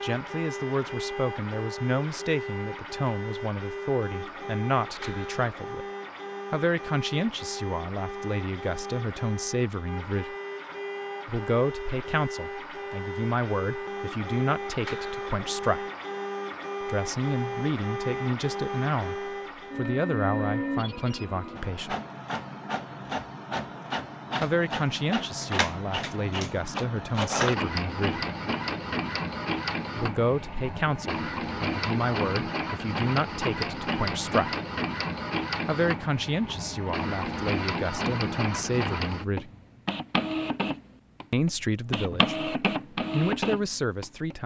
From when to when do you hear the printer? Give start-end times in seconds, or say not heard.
0.0-44.4.